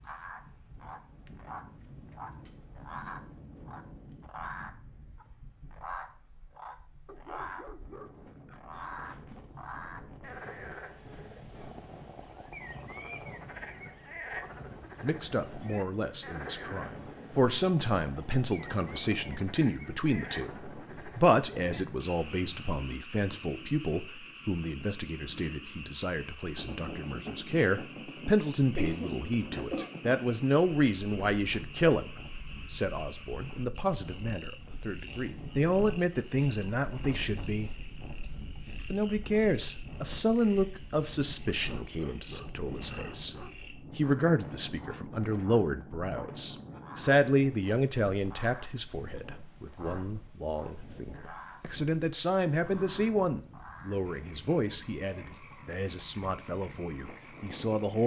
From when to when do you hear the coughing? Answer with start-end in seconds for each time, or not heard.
28.1-29.9.